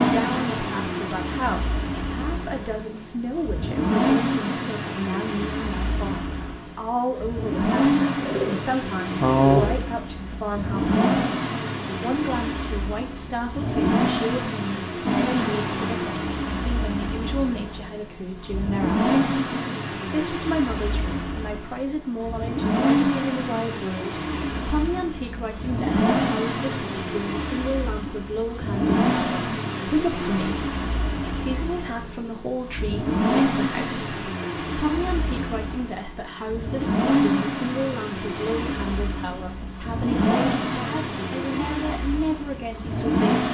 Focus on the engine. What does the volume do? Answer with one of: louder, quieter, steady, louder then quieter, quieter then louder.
steady.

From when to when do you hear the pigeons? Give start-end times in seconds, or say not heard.
8.2-9.8.